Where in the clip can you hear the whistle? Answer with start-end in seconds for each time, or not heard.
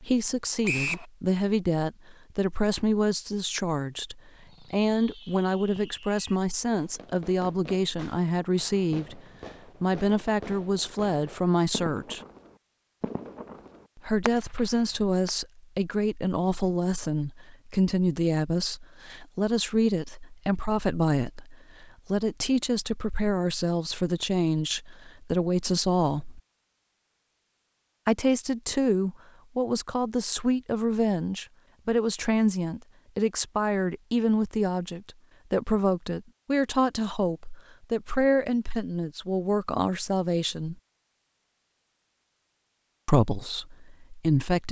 0.7-1.1.